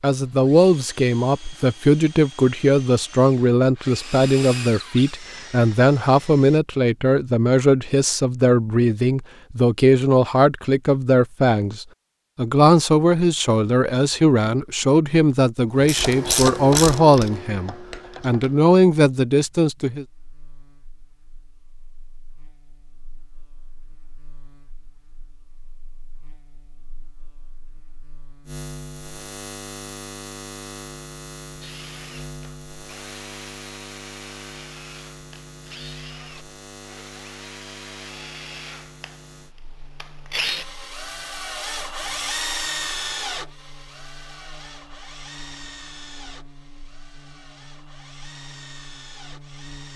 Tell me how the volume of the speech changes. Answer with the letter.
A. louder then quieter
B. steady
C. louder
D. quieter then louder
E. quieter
B.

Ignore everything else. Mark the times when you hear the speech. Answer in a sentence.
The speech can be heard from 0.0 to 20.1 s.